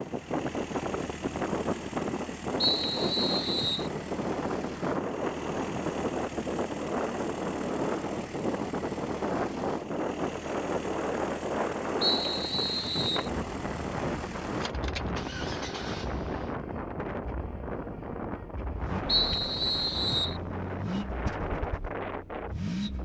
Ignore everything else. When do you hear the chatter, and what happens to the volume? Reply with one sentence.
You can't hear the chatter here.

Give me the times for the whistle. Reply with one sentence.
The whistle can be heard from 2.6 to 3.9 s, from 12.0 to 13.3 s and from 19.1 to 20.4 s.